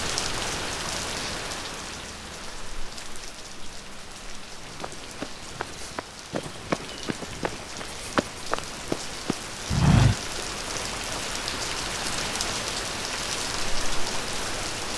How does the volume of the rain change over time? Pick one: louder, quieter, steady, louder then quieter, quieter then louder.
quieter then louder.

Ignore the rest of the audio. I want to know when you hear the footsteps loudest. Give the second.
10 s.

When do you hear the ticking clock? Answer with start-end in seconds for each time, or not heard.
not heard.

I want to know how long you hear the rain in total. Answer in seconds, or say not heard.
15 s.